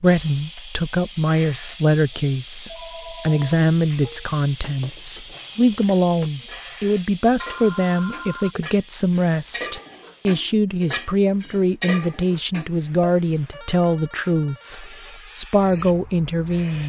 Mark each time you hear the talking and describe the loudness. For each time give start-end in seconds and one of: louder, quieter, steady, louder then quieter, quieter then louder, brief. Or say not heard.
0.0-16.8 steady.